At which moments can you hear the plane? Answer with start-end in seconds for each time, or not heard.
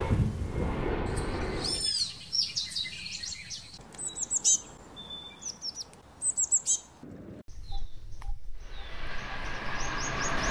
0.0-1.9, 8.6-10.4.